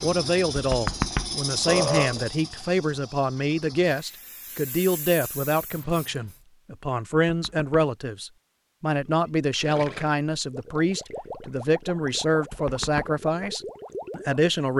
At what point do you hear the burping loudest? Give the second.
2 s.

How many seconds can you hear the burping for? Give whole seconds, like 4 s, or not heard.
3 s.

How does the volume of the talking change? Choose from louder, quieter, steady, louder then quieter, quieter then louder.
steady.